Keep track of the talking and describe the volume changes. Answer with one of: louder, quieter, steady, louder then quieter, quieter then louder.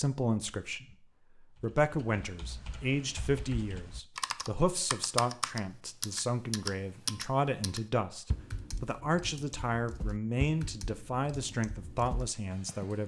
steady.